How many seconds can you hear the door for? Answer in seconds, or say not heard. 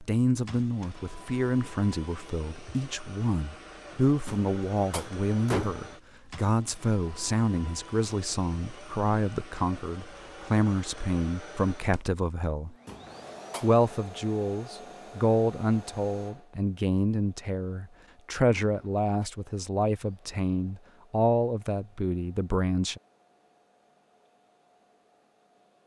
3 s.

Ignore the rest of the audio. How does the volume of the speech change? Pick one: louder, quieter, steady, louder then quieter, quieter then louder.
steady.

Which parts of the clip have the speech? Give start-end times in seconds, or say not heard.
0.0-12.8, 13.6-23.0.